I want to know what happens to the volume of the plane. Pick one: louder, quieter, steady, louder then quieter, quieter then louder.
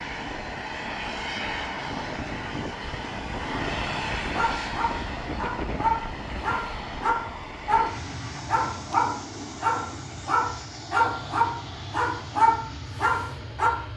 quieter.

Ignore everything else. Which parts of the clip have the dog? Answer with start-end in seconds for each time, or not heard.
4.3-13.8.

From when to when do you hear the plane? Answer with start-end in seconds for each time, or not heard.
0.0-13.9.